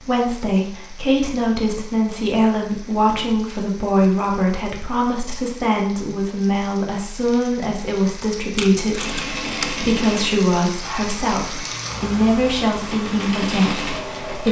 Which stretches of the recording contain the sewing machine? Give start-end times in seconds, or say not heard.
8.9-14.4.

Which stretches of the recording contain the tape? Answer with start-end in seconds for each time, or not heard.
8.6-9.8.